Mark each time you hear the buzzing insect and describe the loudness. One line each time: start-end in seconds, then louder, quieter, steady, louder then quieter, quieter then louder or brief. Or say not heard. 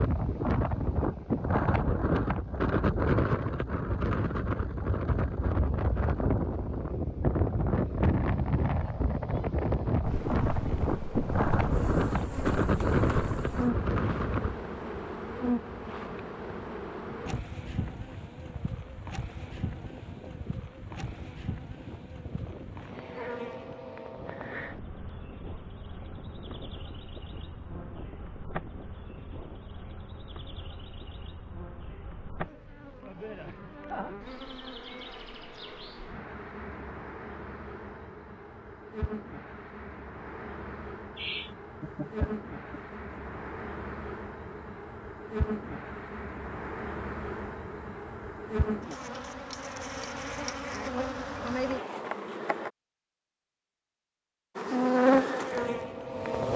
10.1-52.7 quieter then louder
54.5-56.5 brief.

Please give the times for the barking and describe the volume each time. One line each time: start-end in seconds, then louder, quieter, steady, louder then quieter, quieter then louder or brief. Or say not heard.
not heard.